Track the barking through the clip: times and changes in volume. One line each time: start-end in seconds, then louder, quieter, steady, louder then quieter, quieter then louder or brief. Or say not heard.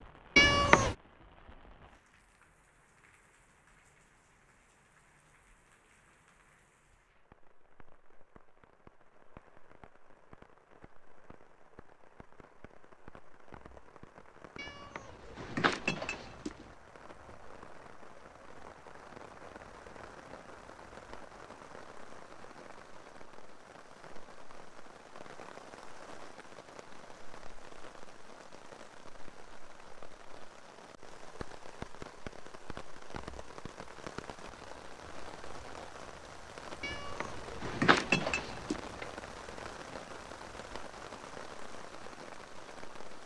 not heard.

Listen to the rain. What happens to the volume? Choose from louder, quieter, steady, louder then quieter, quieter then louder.
louder.